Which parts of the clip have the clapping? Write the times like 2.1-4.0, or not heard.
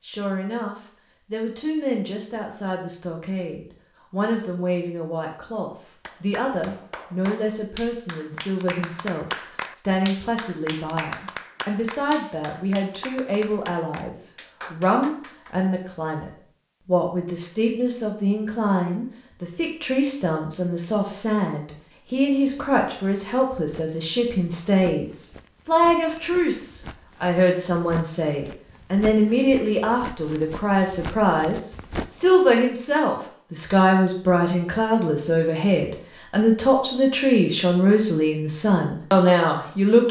6.0-15.6.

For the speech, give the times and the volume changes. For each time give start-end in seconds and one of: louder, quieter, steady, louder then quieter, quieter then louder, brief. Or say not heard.
0.0-40.0 louder.